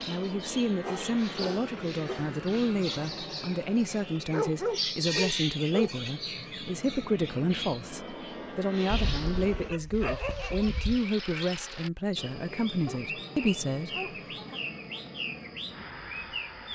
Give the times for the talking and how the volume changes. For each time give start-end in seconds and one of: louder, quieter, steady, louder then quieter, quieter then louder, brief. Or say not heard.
0.1-14.6 steady.